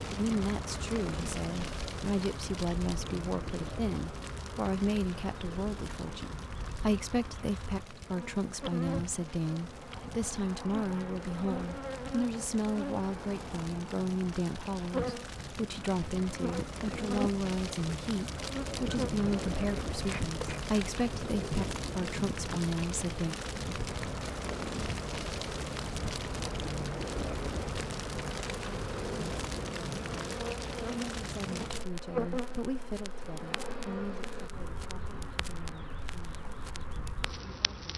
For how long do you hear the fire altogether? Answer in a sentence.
The fire can be heard for 38 seconds in total.